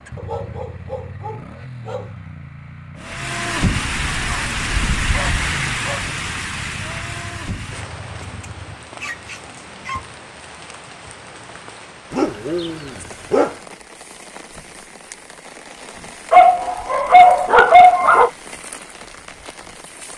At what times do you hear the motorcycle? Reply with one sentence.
The motorcycle can be heard from 0.0 to 8.8 s.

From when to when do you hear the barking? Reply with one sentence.
The barking can be heard from 0.1 to 2.1 s, from 4.1 to 6.0 s, from 8.2 to 10.0 s, from 12.1 to 13.6 s and from 16.3 to 18.3 s.